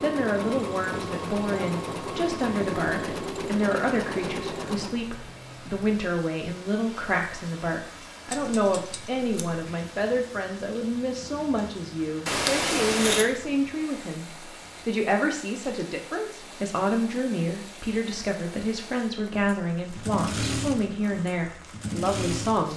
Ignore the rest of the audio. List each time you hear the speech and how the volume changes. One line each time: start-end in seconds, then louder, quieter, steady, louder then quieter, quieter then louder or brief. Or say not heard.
0.0-22.7 steady.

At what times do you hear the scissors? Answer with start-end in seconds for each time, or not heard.
8.2-9.6, 12.2-13.2.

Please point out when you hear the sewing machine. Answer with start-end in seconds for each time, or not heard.
0.0-5.0, 19.3-22.7.